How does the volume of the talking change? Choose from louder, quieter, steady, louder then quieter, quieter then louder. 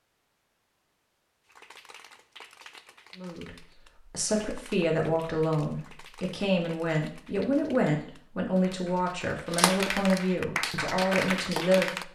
steady.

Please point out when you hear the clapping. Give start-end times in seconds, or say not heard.
1.4-12.0.